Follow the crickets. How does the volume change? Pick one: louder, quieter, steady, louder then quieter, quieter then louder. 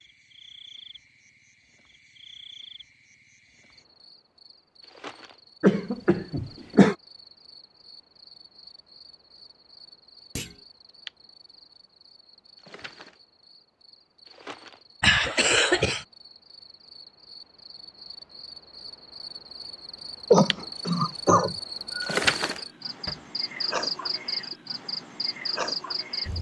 louder.